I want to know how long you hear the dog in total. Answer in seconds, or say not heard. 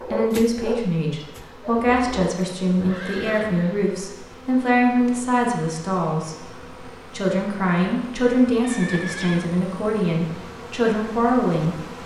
2 s.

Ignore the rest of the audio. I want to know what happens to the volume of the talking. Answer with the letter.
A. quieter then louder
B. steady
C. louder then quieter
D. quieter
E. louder
B.